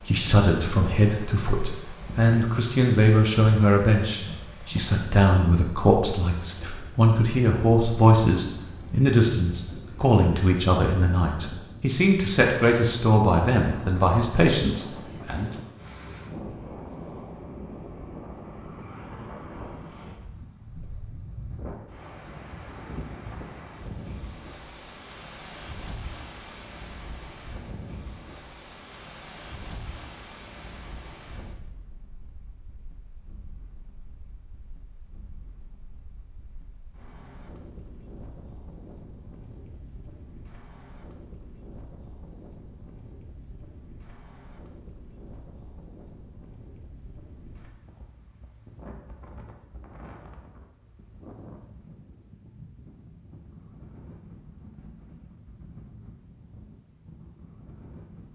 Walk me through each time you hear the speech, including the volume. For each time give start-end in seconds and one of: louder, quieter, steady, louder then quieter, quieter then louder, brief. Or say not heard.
0.0-15.5 steady.